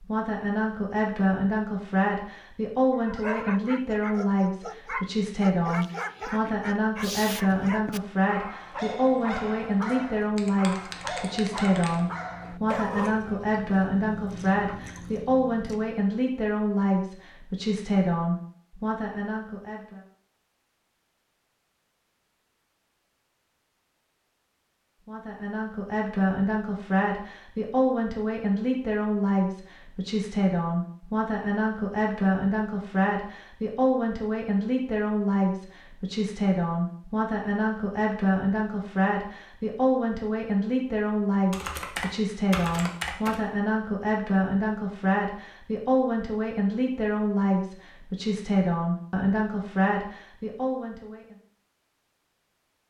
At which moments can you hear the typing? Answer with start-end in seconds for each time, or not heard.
10.3-12.0, 41.5-43.4.